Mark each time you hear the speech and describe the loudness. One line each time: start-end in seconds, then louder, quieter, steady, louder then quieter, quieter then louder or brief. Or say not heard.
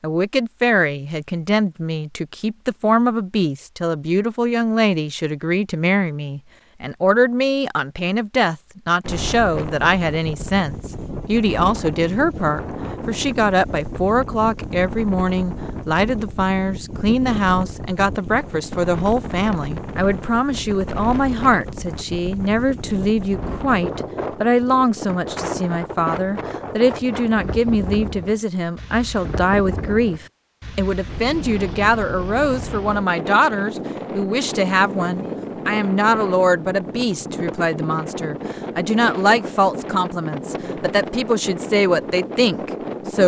0.0-43.2 steady.